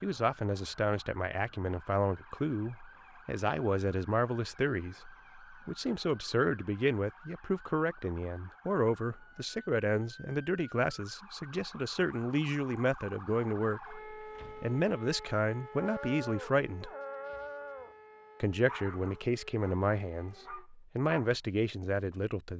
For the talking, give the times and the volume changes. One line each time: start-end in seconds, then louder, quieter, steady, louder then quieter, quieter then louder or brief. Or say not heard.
0.0-16.9 steady
18.4-22.5 quieter then louder.